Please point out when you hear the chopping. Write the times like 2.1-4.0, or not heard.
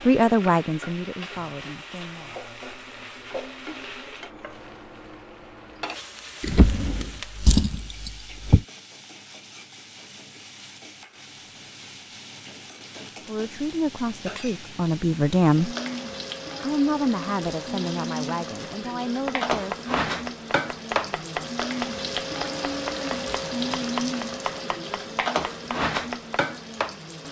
19.1-26.4.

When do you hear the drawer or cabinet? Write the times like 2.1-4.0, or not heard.
6.4-8.7.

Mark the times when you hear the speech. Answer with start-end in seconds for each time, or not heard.
0.0-2.4, 13.2-15.8, 16.6-20.2.